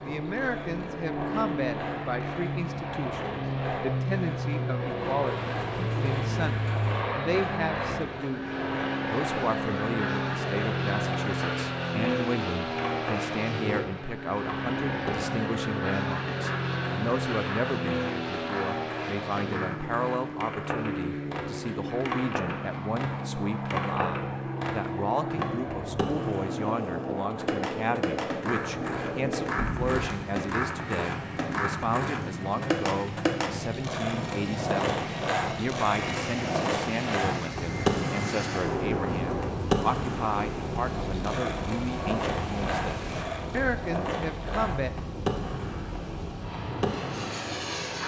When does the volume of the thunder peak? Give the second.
39 s.